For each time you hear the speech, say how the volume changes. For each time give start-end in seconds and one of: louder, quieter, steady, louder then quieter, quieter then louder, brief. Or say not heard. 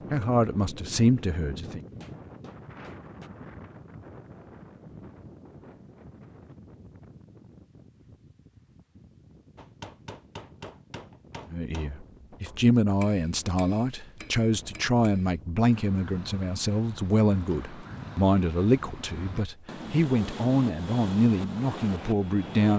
0.1-1.8 brief
11.5-22.7 steady.